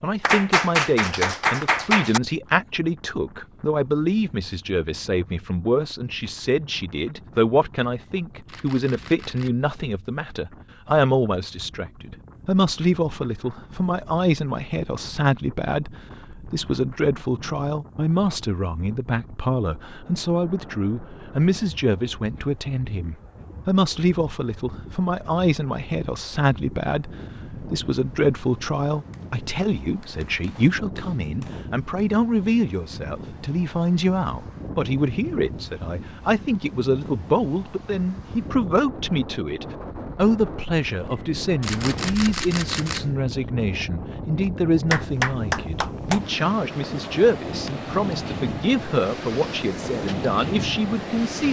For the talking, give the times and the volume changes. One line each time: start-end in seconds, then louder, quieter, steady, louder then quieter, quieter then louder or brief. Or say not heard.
0.0-51.4 steady.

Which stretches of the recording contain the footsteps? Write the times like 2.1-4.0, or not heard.
not heard.